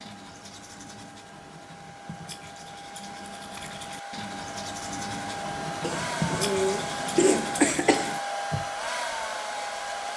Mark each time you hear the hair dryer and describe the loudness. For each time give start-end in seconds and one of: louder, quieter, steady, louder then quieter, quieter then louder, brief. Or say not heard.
0.0-10.1 louder.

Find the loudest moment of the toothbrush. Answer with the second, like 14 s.
6 s.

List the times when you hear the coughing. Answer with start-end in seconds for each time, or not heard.
5.8-8.2.